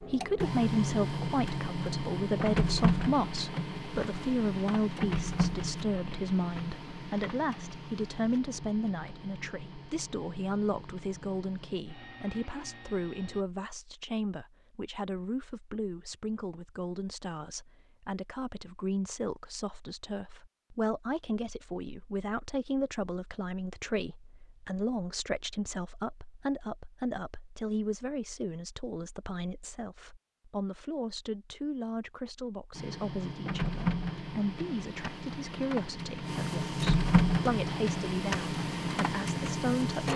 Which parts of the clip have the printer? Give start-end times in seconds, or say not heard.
0.0-13.4, 32.8-40.1.